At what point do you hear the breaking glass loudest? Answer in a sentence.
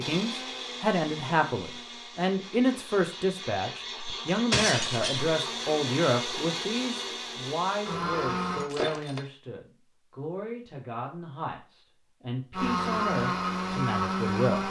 The loudest moment of the breaking glass is at 5 seconds.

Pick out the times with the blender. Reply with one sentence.
You can hear the blender from 0.0 to 8.7 s and from 12.5 to 14.6 s.